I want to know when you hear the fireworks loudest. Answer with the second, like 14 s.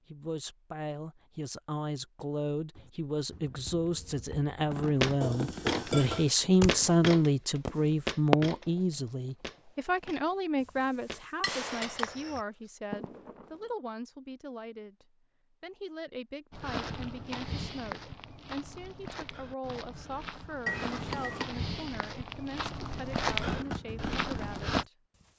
8 s.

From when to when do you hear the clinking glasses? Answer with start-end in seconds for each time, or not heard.
5.2-6.3, 11.4-12.1, 20.6-21.5.